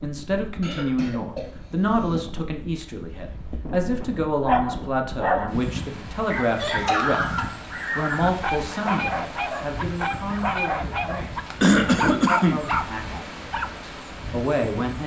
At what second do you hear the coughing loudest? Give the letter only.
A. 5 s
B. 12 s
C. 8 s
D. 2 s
B.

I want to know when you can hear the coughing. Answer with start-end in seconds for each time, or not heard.
0.6-2.2, 6.6-7.5, 11.6-12.6.